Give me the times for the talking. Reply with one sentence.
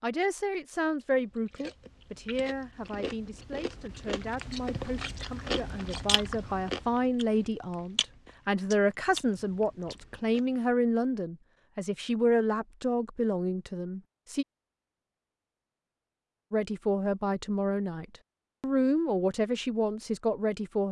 You can hear the talking from 0.0 to 14.4 s and from 16.5 to 20.8 s.